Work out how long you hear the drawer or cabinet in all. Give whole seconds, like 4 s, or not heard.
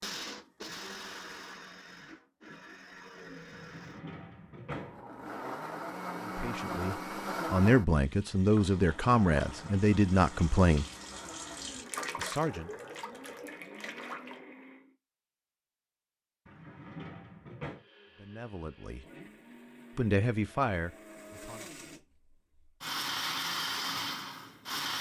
3 s.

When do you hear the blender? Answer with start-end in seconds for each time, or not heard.
0.0-14.9, 17.6-24.9.